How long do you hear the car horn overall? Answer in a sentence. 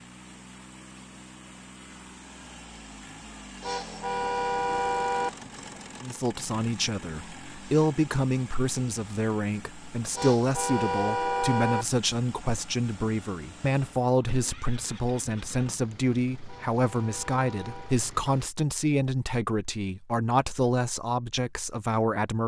You can hear the car horn for 5 seconds altogether.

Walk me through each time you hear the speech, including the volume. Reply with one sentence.
The speech can be heard from 6.0 to 22.4 s, at a steady volume.